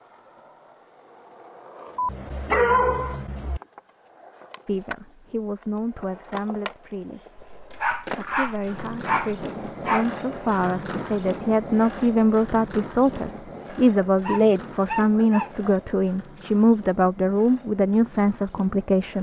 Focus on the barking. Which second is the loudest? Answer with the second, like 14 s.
3 s.